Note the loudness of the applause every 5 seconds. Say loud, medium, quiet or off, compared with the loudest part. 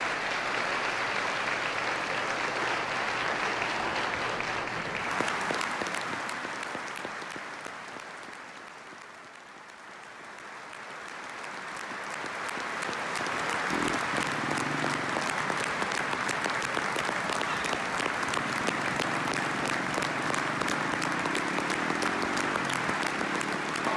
loud, medium, loud, loud, loud.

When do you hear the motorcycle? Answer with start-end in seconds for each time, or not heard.
13.7-23.9.